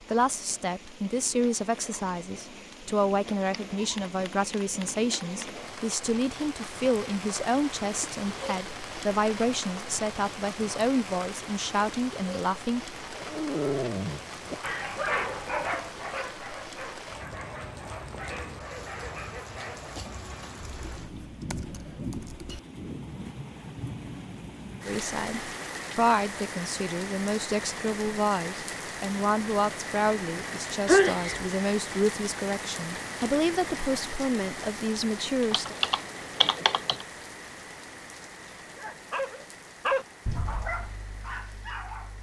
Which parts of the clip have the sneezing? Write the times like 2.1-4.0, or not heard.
30.9-31.4.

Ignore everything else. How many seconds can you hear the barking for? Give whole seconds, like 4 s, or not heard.
10 s.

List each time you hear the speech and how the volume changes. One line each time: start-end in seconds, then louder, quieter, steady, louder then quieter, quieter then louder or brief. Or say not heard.
0.1-12.8 steady
24.9-35.8 steady.